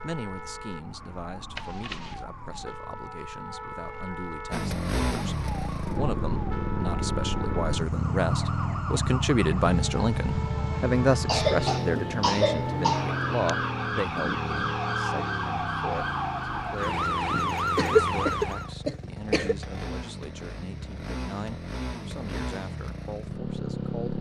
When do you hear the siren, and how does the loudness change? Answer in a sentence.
You can hear the siren from 0.0 to 18.7 s, getting louder.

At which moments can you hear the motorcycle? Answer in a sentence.
You can hear the motorcycle from 4.5 to 24.1 s.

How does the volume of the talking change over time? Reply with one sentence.
The loudness of the talking goes up, then down.